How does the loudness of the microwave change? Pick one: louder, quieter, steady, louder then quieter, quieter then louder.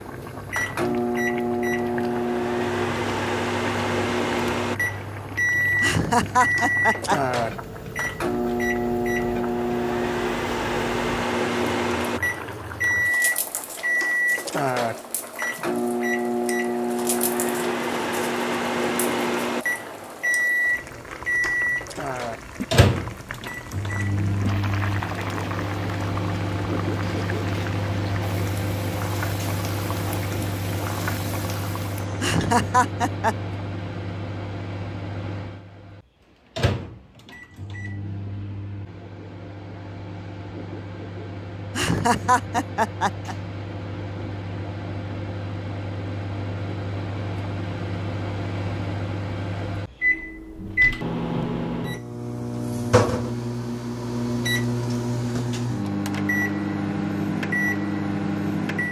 quieter then louder.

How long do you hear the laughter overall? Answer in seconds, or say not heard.
4 s.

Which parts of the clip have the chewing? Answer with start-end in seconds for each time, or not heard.
not heard.